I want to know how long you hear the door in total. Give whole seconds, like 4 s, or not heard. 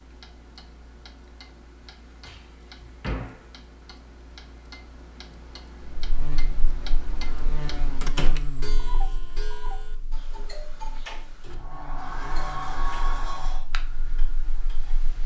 4 s.